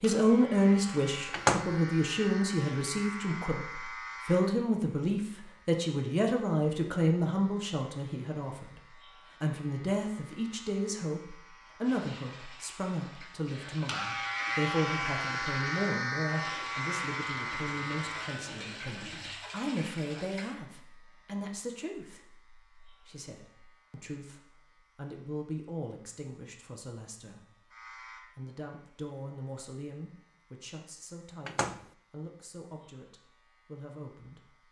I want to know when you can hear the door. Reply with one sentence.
You can hear the door from 1.3 to 1.8 s and from 31.4 to 31.9 s.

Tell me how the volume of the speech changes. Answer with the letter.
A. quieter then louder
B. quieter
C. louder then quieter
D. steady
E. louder
B.